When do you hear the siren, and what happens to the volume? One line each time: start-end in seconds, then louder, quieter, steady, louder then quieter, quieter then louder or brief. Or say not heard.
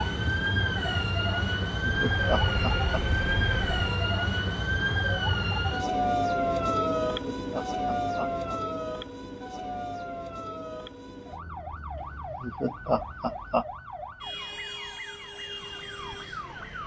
0.0-16.8 quieter.